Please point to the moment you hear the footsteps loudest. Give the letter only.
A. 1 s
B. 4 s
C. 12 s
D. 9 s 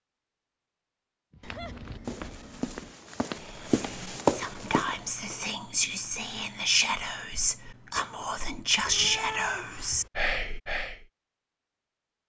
B.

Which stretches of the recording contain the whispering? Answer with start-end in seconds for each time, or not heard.
3.4-11.1.